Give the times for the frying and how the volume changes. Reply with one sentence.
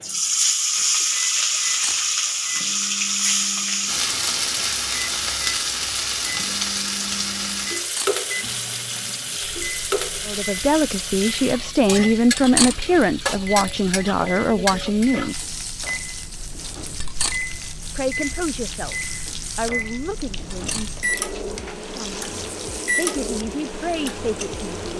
The frying can be heard from 0.0 to 24.9 s, getting quieter.